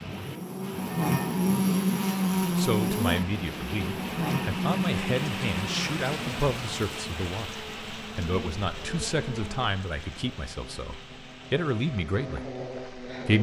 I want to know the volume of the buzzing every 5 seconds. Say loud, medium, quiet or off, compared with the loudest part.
loud, medium, quiet.